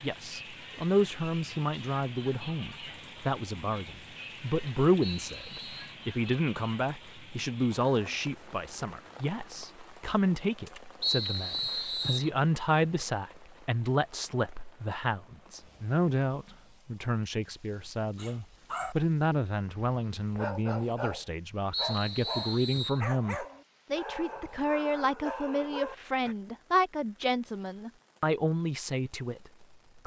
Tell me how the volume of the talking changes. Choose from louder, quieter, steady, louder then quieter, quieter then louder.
steady.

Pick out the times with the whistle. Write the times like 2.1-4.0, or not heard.
5.0-6.0, 11.0-12.3, 21.7-23.0.